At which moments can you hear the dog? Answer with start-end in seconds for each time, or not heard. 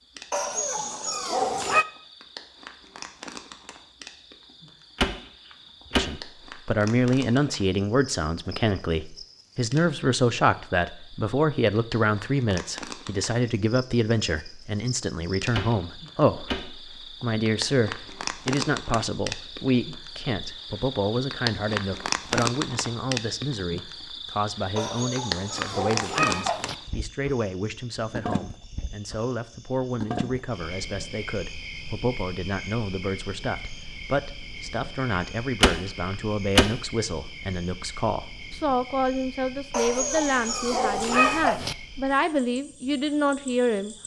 0.3-1.9, 24.8-26.8, 39.7-41.8.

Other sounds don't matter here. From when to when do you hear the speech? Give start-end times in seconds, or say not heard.
6.0-44.0.